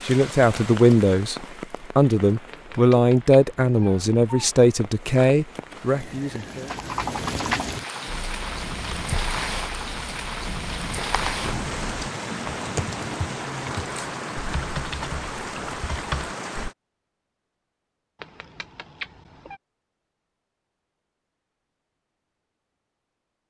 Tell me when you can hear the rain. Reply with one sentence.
The rain can be heard from 0.0 to 16.8 s.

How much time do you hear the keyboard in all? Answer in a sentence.
The keyboard can be heard for 10 seconds in total.